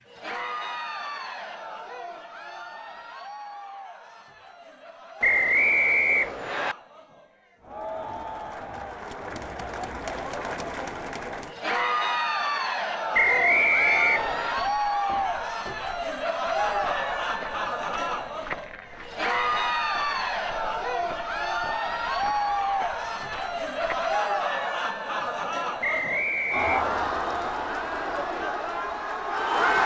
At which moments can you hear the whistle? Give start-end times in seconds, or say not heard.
5.2-6.8, 13.1-14.6, 25.8-26.9.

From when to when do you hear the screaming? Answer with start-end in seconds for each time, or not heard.
not heard.